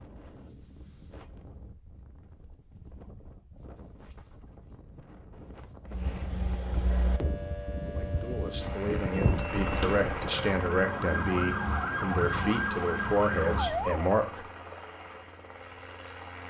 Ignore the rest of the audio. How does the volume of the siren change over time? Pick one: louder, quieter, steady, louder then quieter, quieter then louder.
louder.